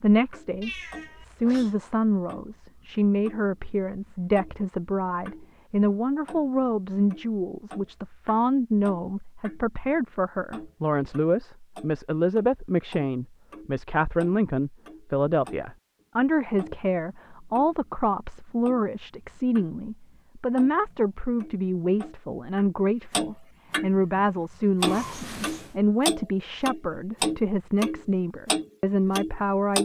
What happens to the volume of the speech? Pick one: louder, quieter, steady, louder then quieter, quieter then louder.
steady.